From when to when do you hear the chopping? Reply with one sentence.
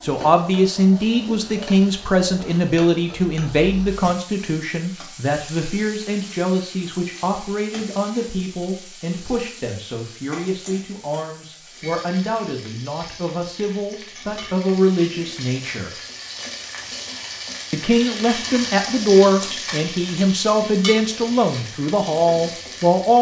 The chopping can't be heard in this clip.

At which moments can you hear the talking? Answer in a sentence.
You can hear the talking from 0.0 to 15.9 s and from 17.7 to 23.1 s.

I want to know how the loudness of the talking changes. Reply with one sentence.
The volume of the talking goes down, then up.